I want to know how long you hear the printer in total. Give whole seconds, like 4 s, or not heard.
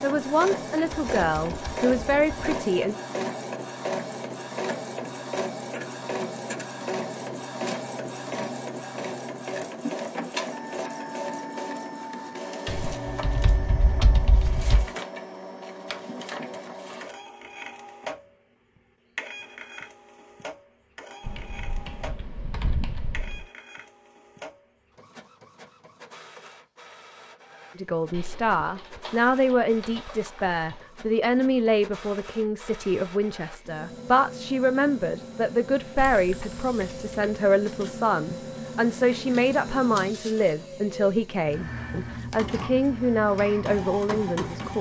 45 s.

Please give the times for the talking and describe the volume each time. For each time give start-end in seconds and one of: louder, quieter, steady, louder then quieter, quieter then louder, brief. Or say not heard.
0.0-3.0 brief
27.8-44.7 steady.